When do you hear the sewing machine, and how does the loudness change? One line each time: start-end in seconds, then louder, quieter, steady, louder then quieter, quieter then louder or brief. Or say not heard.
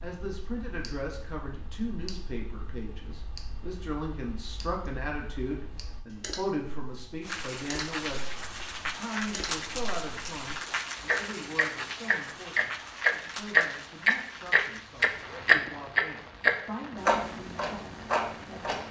not heard.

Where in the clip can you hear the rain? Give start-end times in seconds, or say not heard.
7.2-18.8.